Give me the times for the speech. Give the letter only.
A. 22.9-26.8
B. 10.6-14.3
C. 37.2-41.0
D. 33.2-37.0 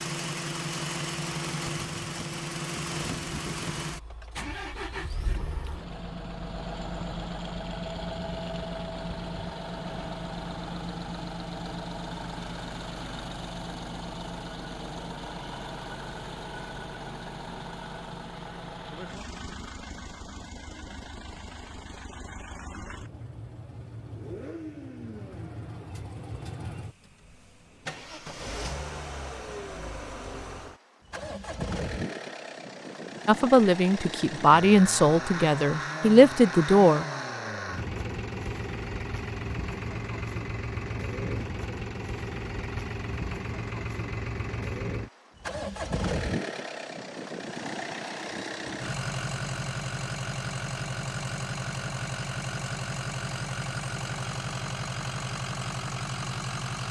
D.